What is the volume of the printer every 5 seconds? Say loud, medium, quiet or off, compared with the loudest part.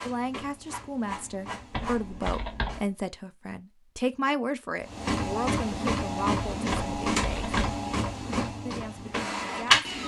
quiet, loud.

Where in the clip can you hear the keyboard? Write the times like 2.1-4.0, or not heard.
1.7-2.8, 6.7-7.8.